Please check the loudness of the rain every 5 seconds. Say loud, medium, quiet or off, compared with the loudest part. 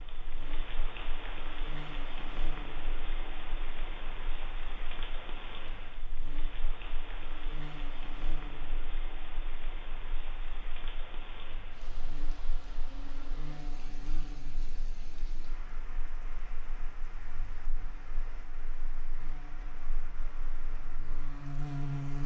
loud, loud, medium, medium, medium.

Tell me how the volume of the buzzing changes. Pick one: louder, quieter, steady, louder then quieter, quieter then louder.
quieter then louder.